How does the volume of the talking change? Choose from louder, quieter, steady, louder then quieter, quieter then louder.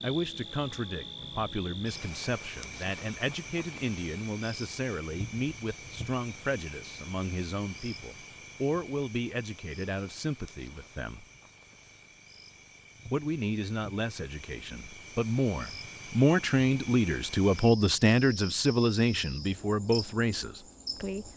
louder.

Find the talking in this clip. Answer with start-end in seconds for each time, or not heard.
0.0-11.2, 13.1-21.3.